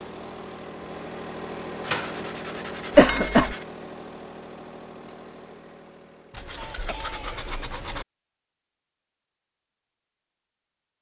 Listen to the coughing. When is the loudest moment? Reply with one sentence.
The volume of the coughing peaks at 3 seconds.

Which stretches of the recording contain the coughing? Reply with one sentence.
The coughing can be heard from 3.0 to 3.5 s and from 6.5 to 7.5 s.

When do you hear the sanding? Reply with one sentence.
You can hear the sanding from 1.8 to 3.6 s and from 6.3 to 8.1 s.